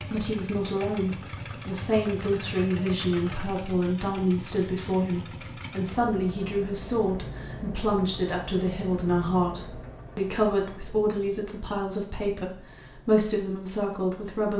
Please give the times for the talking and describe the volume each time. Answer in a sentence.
You can hear the talking from 0.1 to 14.5 s, at a steady volume.